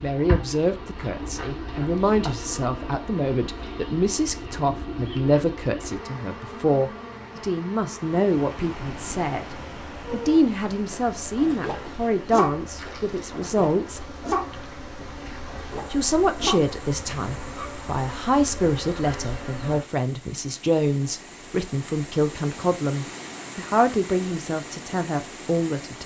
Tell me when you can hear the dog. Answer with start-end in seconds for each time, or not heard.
10.1-17.7.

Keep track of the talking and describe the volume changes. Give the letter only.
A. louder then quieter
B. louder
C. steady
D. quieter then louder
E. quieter
C.